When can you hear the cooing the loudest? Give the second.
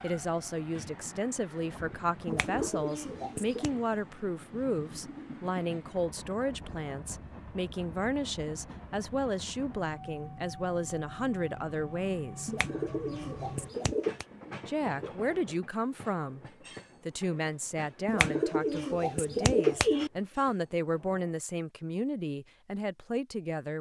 20 s.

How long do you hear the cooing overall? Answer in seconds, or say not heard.
5 s.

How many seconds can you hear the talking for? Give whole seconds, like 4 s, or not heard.
21 s.